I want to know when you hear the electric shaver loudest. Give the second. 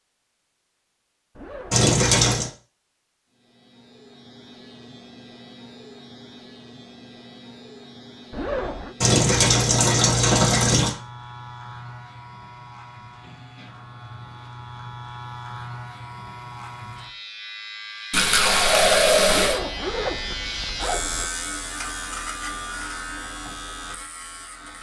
21 s.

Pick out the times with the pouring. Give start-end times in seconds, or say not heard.
1.7-2.5, 9.0-10.9, 18.1-19.6.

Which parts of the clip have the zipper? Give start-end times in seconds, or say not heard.
1.4-1.9, 8.3-8.9, 19.2-21.3.